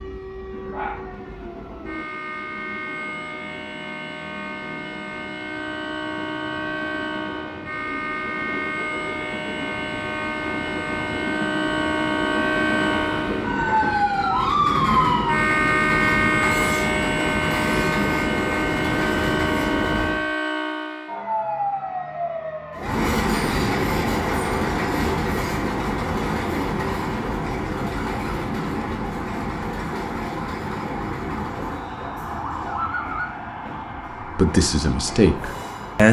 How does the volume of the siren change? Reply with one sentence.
The loudness of the siren goes up, then down.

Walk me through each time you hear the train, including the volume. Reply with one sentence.
You can hear the train from 0.0 to 20.2 s, getting louder; and from 22.8 to 36.0 s, getting quieter.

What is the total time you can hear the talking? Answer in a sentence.
You can hear the talking for 2 seconds altogether.